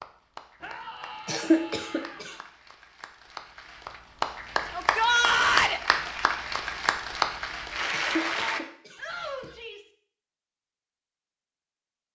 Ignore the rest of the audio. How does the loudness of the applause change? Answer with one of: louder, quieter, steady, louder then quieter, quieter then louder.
louder.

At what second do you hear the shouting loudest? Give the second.
5 s.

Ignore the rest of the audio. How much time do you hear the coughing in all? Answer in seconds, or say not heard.
3 s.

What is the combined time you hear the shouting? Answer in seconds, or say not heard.
4 s.